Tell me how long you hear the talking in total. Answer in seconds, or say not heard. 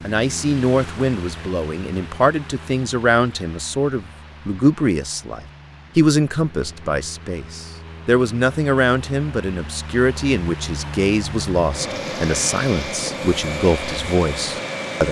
15 s.